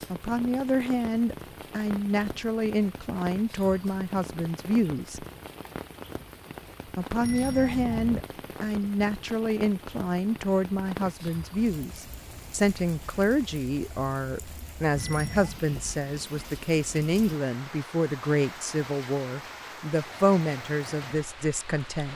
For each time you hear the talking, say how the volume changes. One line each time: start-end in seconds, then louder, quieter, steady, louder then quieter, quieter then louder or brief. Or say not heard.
0.1-5.2 steady
7.0-22.1 steady.